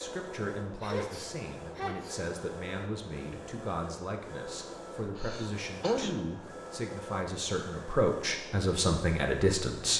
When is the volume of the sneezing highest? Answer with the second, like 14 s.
6 s.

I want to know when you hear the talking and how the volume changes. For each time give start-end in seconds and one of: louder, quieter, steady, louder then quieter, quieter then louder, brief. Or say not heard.
0.0-9.9 louder.